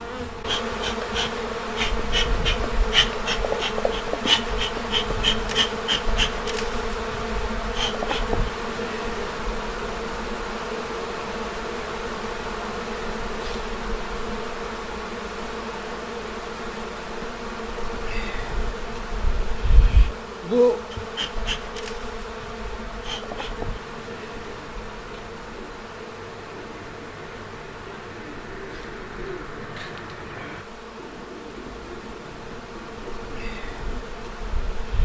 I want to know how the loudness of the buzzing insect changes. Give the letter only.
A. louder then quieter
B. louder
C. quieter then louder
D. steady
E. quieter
E.